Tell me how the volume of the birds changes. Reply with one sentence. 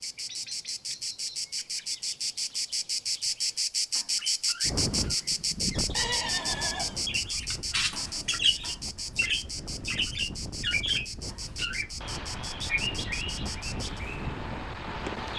The loudness of the birds goes up, then down.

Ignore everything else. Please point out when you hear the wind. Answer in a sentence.
The wind can be heard from 4.6 to 15.3 s.